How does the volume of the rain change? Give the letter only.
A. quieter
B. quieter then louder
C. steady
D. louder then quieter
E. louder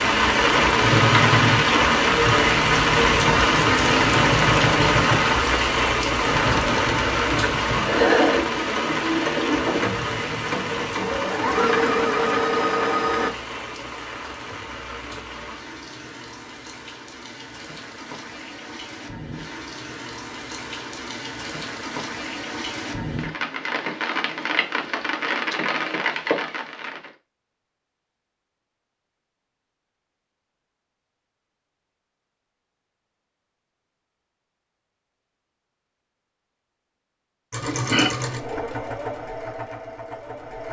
B.